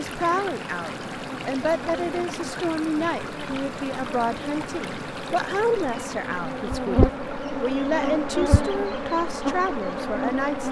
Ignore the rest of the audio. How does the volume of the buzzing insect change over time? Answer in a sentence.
The loudness of the buzzing insect goes up.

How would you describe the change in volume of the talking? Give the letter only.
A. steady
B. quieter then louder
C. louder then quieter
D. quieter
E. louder
A.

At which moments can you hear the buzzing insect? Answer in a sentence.
You can hear the buzzing insect from 0.1 to 10.6 s.